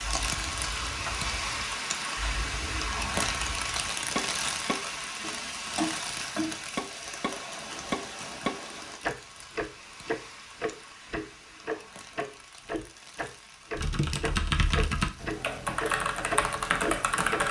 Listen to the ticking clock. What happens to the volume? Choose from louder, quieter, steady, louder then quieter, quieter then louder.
louder.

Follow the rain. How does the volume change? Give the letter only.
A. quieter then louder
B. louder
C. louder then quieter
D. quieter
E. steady
D.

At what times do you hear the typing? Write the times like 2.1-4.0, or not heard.
13.8-17.4.